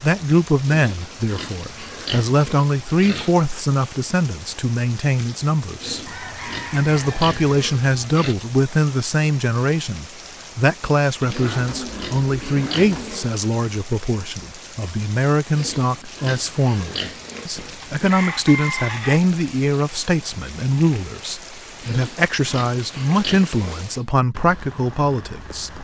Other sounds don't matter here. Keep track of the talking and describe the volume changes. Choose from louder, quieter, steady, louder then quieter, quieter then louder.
steady.